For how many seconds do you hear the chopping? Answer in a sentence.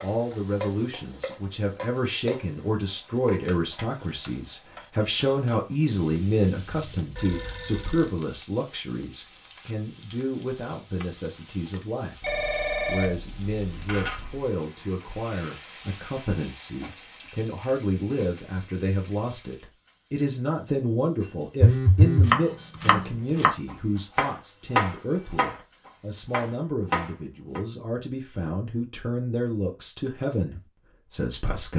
The chopping can be heard for 5 seconds in total.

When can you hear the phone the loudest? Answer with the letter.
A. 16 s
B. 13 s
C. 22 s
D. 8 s
C.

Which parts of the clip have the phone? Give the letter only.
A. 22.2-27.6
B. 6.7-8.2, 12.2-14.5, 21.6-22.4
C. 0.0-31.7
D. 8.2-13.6
B.